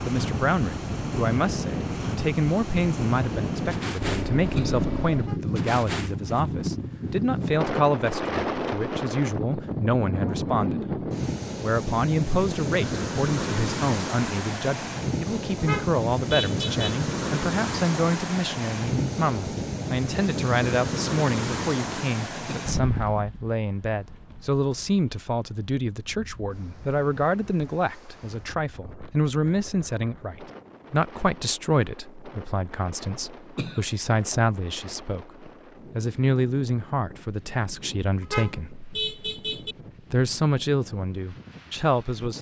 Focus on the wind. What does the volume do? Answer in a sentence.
The loudness of the wind goes down.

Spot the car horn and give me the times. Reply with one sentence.
You can hear the car horn from 4.0 to 5.4 s, from 15.6 to 16.9 s and from 38.2 to 39.8 s.